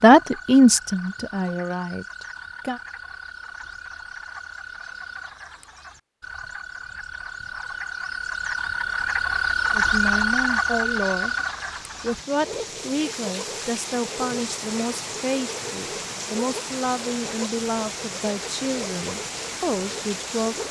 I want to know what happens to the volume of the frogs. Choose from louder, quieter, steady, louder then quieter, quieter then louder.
louder then quieter.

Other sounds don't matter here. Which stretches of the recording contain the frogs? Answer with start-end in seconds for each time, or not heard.
0.0-20.6.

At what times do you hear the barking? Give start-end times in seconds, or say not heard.
not heard.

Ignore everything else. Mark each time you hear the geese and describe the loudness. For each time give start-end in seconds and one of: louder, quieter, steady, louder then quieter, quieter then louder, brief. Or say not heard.
not heard.